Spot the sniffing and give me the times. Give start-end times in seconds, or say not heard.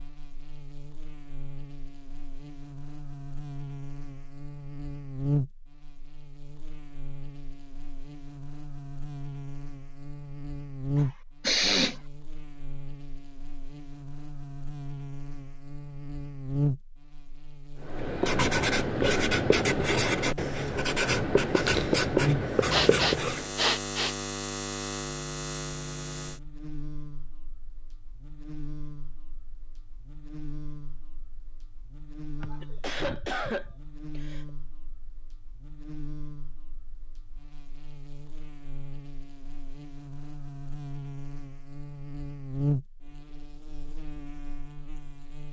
11.4-11.9, 22.7-24.1, 32.4-34.5.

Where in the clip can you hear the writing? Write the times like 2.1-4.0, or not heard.
17.8-23.5.